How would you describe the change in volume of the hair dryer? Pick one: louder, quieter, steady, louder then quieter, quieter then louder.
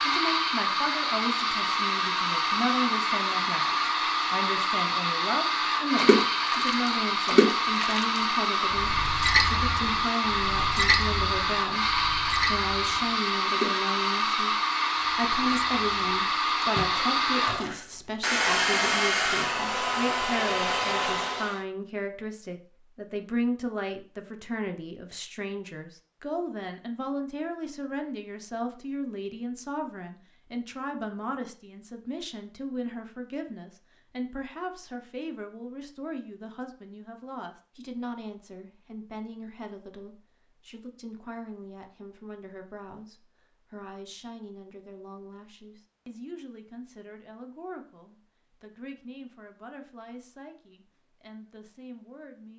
steady.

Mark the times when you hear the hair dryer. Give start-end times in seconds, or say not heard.
0.0-21.6.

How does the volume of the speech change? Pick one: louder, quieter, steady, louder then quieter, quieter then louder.
quieter.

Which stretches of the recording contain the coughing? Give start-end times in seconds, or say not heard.
not heard.